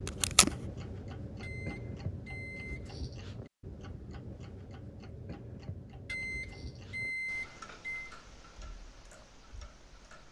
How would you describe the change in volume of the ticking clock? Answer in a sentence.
The volume of the ticking clock goes down.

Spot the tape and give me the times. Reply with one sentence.
The tape can be heard from 0.1 to 0.5 s.